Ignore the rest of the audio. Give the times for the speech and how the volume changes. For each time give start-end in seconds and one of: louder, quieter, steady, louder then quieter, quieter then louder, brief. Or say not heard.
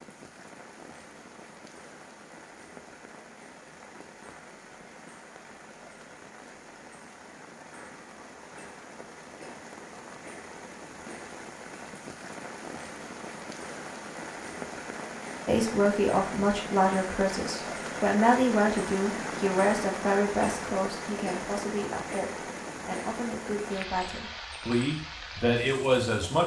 15.4-26.4 quieter then louder.